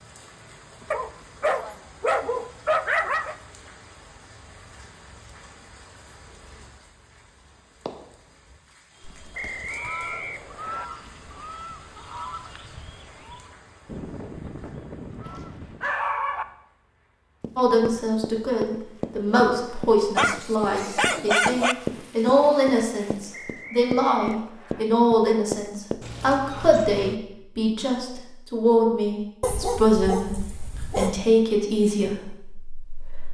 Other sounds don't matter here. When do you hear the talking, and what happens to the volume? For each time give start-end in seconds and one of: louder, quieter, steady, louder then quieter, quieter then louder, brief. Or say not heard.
17.6-33.2 steady.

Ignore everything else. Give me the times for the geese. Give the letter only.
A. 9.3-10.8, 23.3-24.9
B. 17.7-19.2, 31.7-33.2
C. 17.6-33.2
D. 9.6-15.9
D.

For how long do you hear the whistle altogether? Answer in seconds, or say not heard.
3 s.